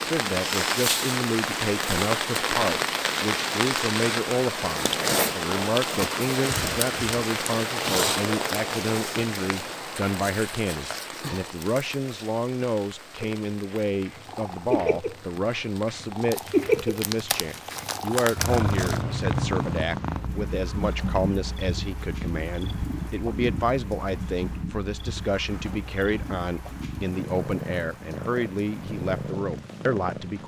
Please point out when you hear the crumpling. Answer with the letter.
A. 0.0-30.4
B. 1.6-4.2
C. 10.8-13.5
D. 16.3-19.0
D.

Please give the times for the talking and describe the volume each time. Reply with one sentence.
The talking can be heard from 0.0 to 30.4 s, at a steady volume.